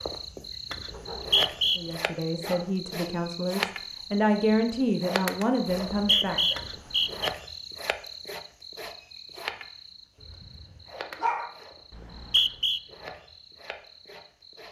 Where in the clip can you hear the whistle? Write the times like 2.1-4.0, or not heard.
0.9-1.8, 5.8-7.3, 11.9-12.8.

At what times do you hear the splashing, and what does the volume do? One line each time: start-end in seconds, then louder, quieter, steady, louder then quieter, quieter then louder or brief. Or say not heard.
not heard.